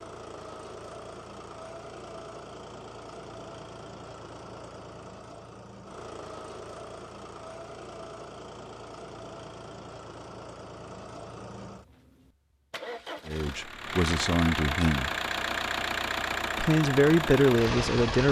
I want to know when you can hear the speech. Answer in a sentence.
The speech can be heard from 13.2 to 15.1 s and from 16.6 to 18.2 s.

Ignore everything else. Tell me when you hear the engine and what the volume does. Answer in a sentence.
The engine can be heard from 0.0 to 18.2 s, getting louder.